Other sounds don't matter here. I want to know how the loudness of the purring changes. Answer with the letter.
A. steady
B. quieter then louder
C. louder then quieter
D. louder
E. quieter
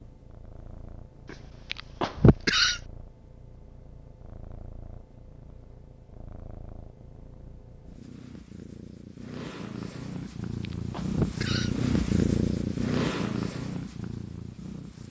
D.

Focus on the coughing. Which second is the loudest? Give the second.
2 s.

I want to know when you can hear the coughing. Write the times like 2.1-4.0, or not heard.
1.7-2.8, 10.6-11.7.